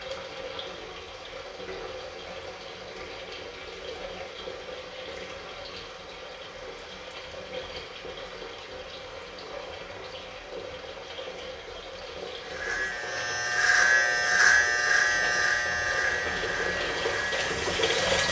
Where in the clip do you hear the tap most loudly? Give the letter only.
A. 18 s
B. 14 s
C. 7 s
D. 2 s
A.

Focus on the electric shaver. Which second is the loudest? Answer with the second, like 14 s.
14 s.